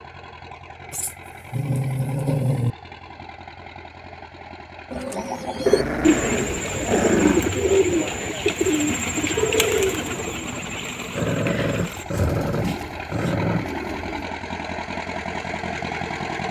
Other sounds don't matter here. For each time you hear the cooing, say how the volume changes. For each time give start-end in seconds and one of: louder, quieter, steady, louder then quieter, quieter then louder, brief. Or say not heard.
4.9-14.3 quieter.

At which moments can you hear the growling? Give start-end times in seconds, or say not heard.
0.9-2.8, 5.7-7.5, 11.2-13.7.